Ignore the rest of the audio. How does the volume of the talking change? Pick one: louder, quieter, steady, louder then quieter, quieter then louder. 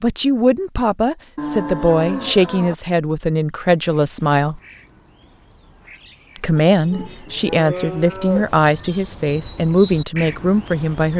steady.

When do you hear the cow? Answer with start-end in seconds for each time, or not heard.
1.4-2.8, 6.8-8.6.